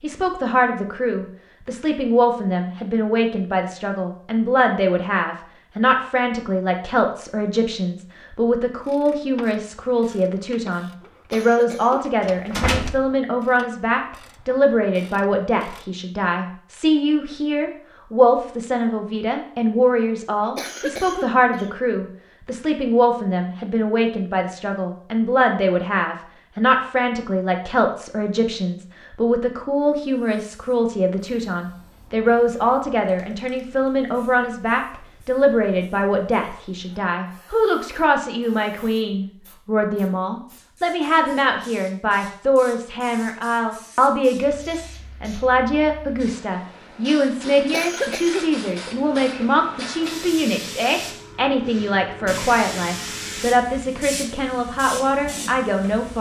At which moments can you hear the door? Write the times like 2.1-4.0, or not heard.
12.2-13.1.